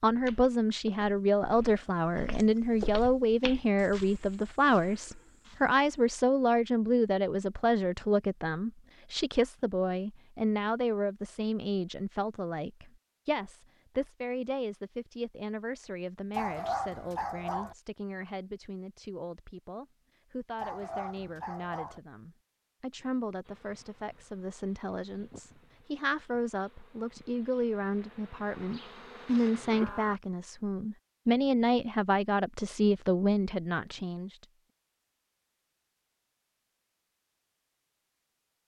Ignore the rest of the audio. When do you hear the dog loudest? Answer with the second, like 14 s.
17 s.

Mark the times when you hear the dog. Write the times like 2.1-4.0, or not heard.
16.4-17.8, 20.6-22.0.